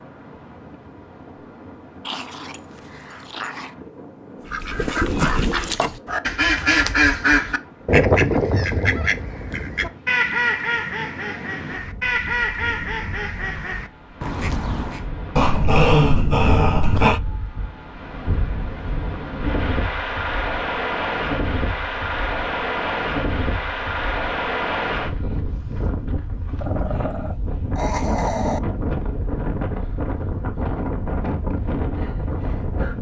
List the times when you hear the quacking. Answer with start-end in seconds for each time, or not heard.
4.5-15.1.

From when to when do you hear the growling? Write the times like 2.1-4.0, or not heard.
2.0-3.8, 15.3-17.2, 26.6-28.6.